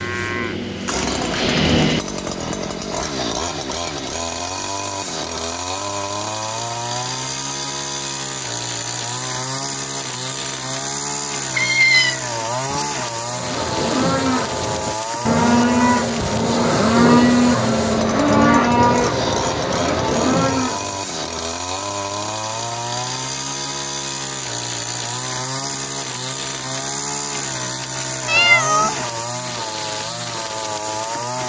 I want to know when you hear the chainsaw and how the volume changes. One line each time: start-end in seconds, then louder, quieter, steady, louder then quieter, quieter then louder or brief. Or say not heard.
0.0-31.4 steady.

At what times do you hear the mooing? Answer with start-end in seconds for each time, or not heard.
0.0-2.0, 13.2-21.0.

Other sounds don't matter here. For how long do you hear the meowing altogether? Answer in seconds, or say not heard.
2 s.